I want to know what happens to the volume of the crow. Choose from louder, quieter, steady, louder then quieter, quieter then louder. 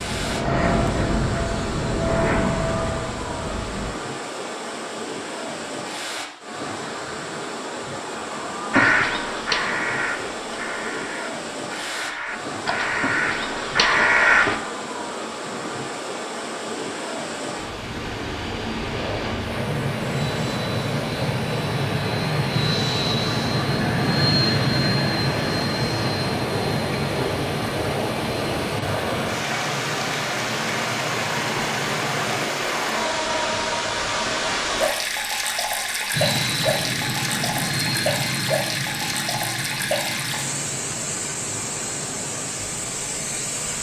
quieter then louder.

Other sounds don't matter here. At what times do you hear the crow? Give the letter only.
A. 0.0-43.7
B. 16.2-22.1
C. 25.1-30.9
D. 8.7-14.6
D.